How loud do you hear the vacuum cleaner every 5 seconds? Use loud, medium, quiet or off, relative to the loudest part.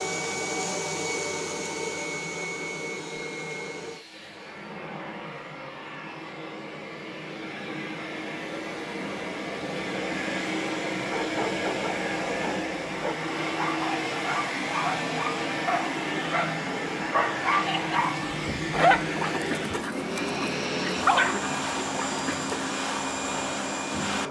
loud, medium, loud, loud, loud.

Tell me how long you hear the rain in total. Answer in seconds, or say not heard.
not heard.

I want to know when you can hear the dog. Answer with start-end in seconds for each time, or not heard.
11.1-22.8.